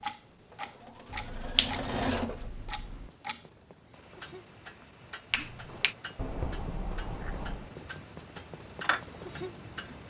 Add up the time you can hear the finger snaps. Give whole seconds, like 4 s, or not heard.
3 s.